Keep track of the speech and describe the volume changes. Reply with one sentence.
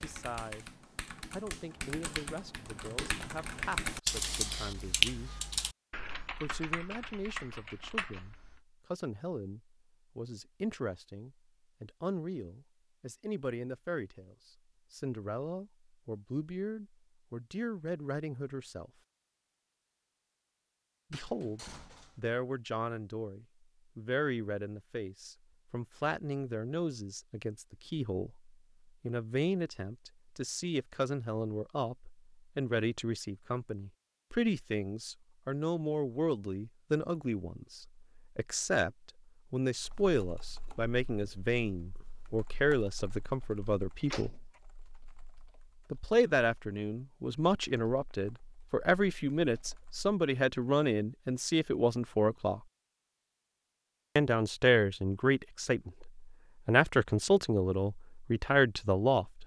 The volume of the speech goes up.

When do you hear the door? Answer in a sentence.
You can hear the door from 21.1 to 22.2 s and from 44.0 to 44.6 s.